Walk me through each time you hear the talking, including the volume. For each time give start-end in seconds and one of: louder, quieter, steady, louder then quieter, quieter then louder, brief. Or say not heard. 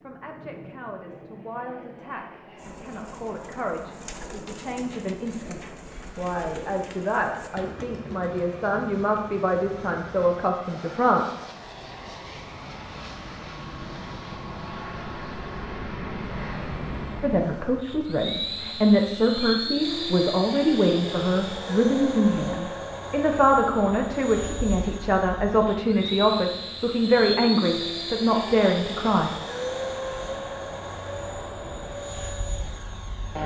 0.0-11.2 louder
17.2-29.4 steady.